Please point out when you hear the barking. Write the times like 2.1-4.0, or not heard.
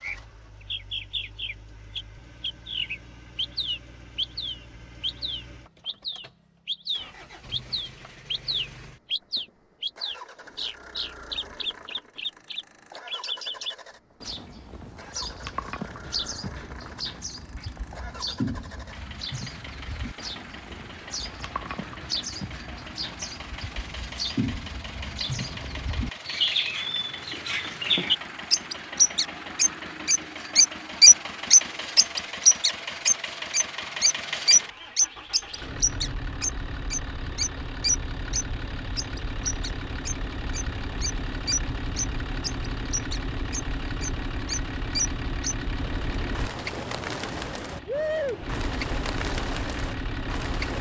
not heard.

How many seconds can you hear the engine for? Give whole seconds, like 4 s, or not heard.
51 s.